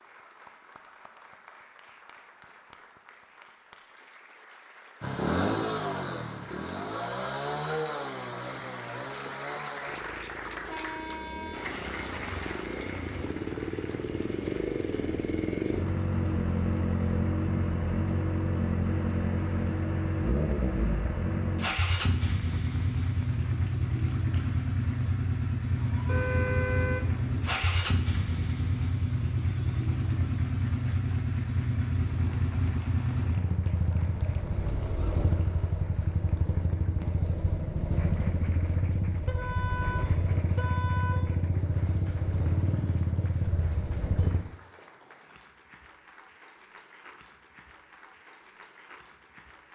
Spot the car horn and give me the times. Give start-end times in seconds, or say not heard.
10.6-11.8, 26.1-27.6, 39.2-41.4.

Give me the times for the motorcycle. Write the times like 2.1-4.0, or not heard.
5.0-44.4.